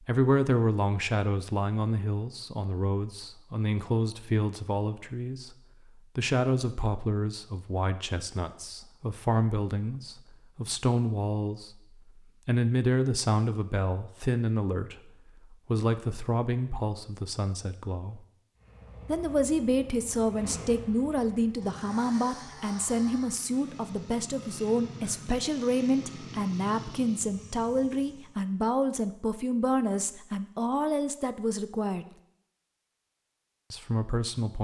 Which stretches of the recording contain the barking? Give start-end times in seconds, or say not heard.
not heard.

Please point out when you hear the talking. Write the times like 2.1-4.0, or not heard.
0.0-18.2, 19.1-32.0, 33.7-34.6.